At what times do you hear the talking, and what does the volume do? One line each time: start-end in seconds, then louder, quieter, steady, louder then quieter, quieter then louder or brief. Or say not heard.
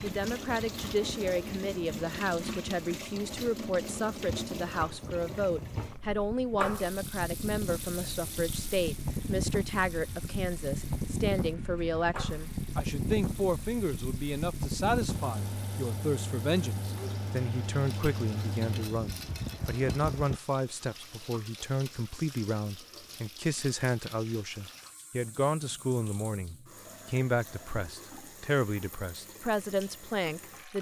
0.0-30.7 steady.